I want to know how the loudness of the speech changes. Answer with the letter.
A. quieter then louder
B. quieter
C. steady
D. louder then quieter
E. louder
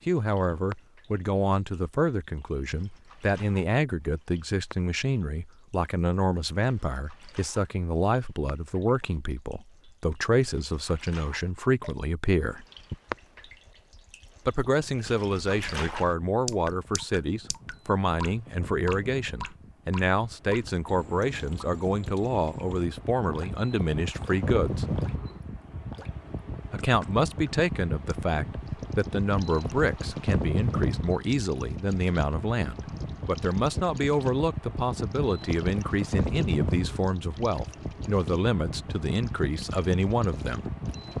C.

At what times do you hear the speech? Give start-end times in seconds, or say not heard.
0.1-12.7, 14.4-24.9, 26.7-40.6.